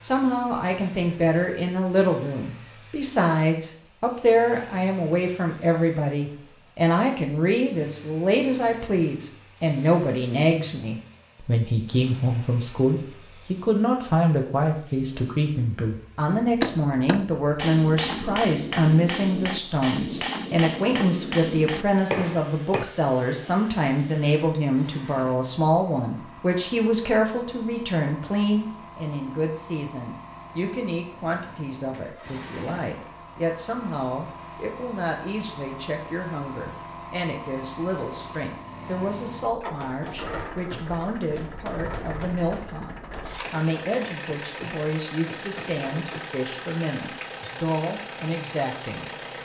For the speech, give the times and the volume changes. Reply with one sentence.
The speech can be heard from 0.0 to 49.4 s, getting quieter.